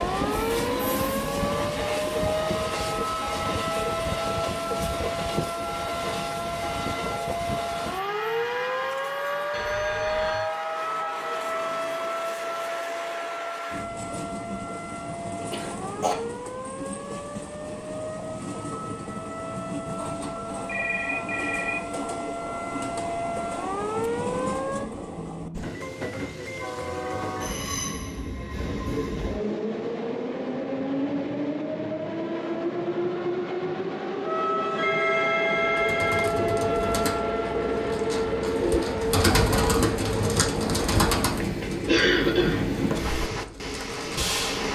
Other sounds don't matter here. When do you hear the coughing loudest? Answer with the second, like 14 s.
42 s.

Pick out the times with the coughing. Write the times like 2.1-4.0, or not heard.
15.5-16.1, 41.9-42.6.